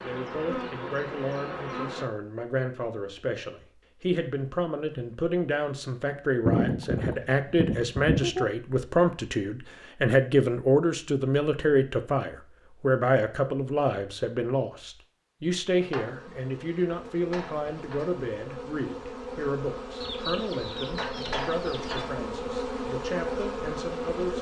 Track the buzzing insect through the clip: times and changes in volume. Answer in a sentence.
The buzzing insect can be heard briefly from 0.0 to 2.0 s; and from 15.7 to 24.3 s, getting louder.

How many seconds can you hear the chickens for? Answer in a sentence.
The chickens can be heard for 4 seconds in total.